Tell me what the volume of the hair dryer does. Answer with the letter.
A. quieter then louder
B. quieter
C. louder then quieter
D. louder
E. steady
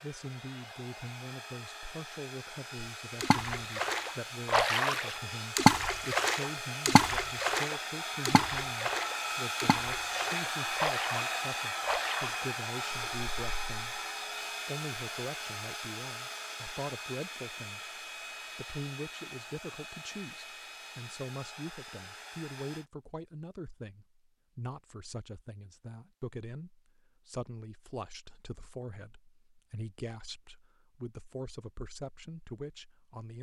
C.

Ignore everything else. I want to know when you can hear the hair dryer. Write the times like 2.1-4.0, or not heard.
0.0-22.9.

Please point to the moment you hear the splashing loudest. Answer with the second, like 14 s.
6 s.